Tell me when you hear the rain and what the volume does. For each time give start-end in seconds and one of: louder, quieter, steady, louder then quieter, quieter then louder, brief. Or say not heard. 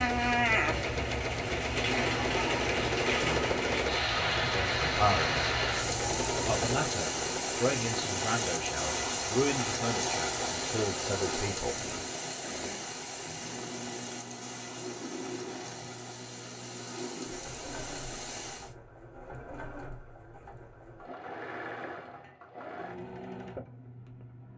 0.0-18.8 quieter.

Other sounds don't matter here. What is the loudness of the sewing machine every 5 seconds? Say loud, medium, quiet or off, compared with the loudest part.
loud, loud, medium, medium, medium.